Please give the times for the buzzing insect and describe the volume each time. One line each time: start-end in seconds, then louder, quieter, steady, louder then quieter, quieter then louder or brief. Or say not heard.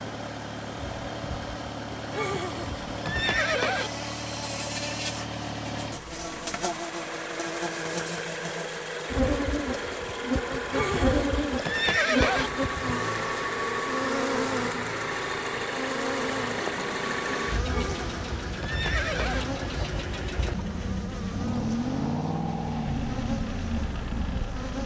0.0-24.8 louder then quieter.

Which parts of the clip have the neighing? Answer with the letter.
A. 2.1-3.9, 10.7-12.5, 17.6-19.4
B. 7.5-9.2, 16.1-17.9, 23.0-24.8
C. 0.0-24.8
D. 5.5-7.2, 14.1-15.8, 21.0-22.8
A.